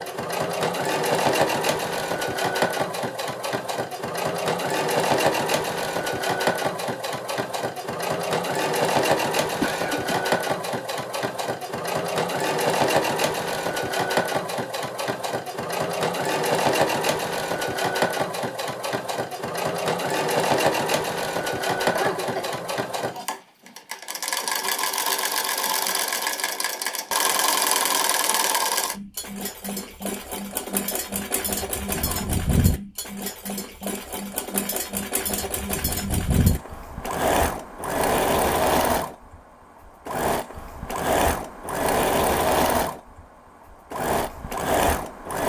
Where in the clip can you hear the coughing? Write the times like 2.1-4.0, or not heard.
9.6-10.2, 21.8-22.7, 31.9-32.4.